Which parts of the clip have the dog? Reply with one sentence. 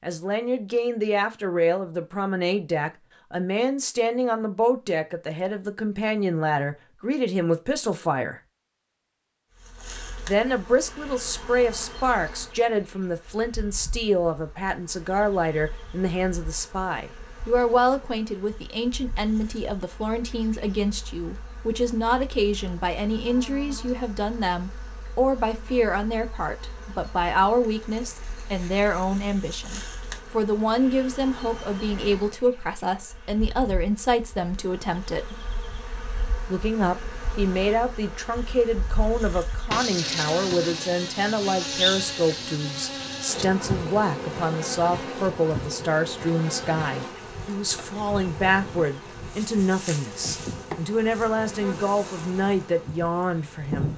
The dog can't be heard in this clip.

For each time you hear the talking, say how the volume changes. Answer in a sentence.
You can hear the talking from 0.0 to 8.4 s, at a steady volume; from 10.2 to 35.5 s, at a steady volume; and from 36.5 to 53.9 s, at a steady volume.